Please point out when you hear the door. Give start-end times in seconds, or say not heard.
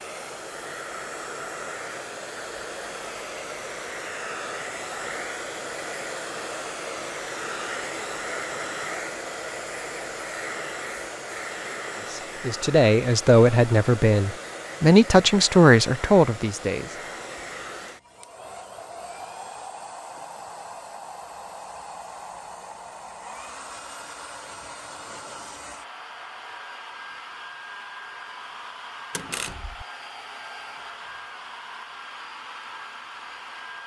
29.1-29.9.